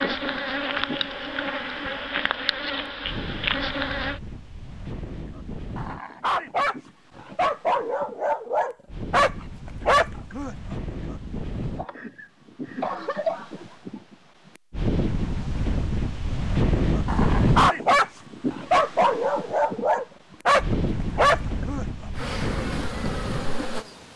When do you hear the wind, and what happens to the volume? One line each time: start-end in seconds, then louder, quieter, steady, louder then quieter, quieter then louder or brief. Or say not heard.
0.0-23.6 louder then quieter.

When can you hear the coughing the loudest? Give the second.
13 s.